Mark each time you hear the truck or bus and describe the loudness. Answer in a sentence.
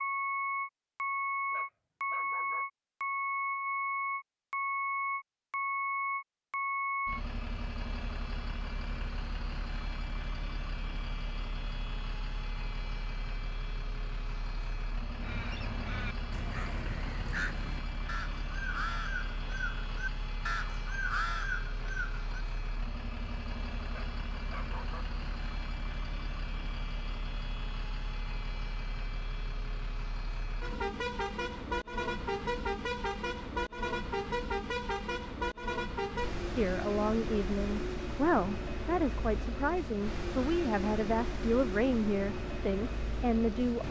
You can hear the truck or bus from 0.0 to 43.8 s, getting quieter then louder.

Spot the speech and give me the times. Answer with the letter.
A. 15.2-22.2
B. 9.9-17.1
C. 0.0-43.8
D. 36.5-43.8
D.